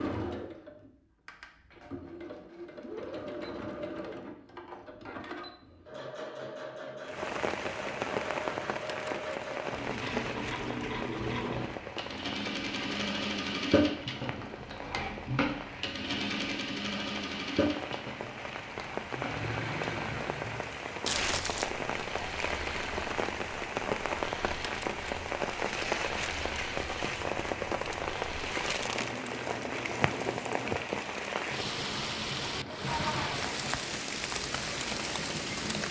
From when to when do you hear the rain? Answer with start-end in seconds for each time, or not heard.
7.0-35.8.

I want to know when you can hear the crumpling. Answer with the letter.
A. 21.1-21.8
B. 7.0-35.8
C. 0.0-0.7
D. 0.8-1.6
A.